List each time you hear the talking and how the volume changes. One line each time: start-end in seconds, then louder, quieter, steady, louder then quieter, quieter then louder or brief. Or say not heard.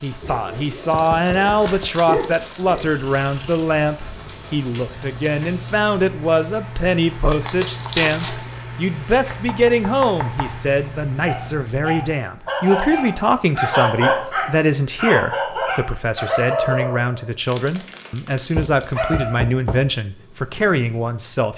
0.0-21.5 steady.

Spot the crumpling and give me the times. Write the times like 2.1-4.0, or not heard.
0.8-2.8, 7.3-8.5, 17.4-19.1.